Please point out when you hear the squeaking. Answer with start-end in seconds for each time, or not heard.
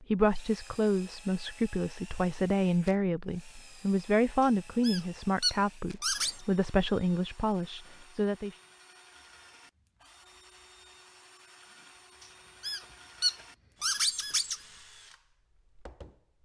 4.4-6.4, 12.2-14.6.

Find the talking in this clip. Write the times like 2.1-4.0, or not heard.
0.0-8.6.